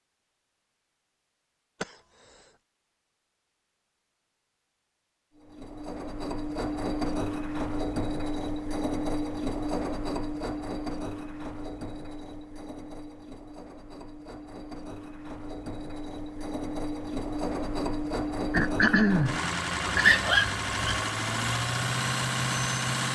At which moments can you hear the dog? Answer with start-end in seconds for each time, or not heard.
19.9-21.1.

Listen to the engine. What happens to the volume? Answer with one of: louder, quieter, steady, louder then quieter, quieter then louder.
quieter then louder.